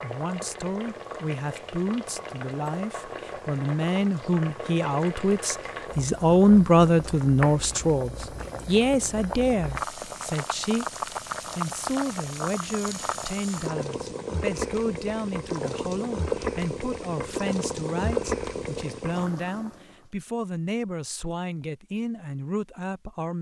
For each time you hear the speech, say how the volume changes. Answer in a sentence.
The speech can be heard from 0.0 to 23.3 s, getting louder then quieter.